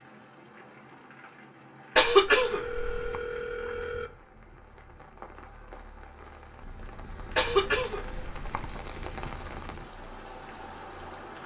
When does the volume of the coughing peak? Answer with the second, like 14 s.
2 s.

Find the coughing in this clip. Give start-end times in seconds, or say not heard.
1.9-3.2, 7.3-8.8.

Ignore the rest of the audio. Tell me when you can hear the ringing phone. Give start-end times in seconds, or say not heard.
2.3-4.1, 7.3-8.8.